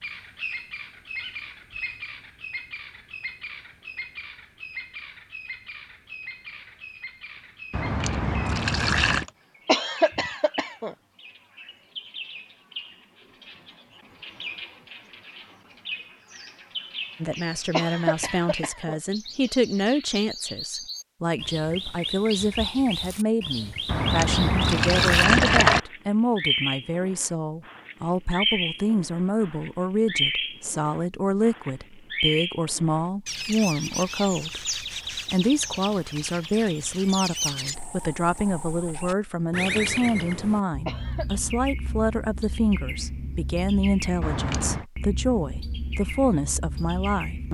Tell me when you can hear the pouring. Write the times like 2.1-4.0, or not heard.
7.7-9.2, 23.9-25.8, 44.2-44.9.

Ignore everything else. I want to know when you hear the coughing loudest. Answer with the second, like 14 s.
10 s.